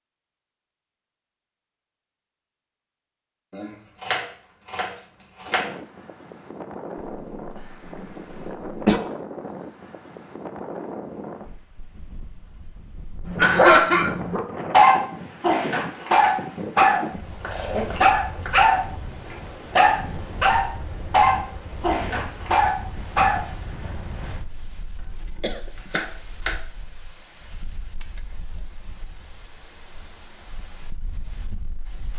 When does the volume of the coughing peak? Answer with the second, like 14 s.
14 s.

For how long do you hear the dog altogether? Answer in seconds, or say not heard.
11 s.